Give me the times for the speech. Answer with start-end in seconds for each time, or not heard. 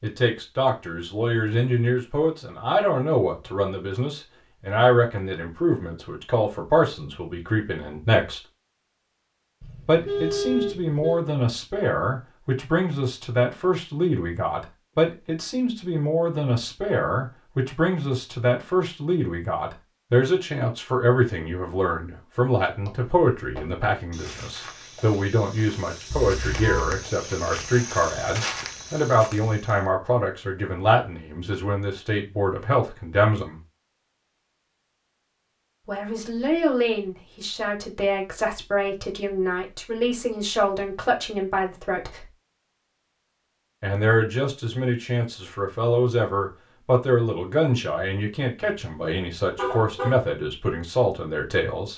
0.0-8.4, 9.8-33.6, 35.9-42.3, 43.8-51.9.